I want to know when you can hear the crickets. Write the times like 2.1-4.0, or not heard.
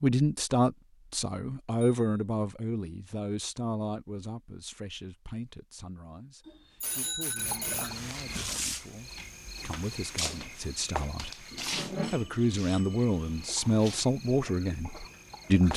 7.3-15.7.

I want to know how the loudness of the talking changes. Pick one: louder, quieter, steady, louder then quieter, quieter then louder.
quieter then louder.